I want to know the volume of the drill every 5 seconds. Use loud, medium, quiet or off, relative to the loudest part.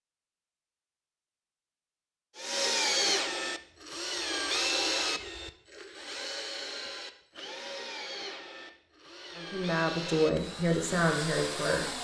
loud, medium, medium.